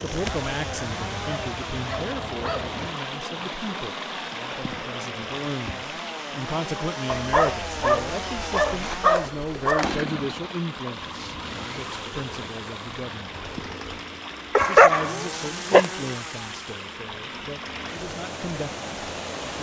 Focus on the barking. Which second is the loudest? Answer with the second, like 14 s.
15 s.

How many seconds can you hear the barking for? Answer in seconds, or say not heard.
7 s.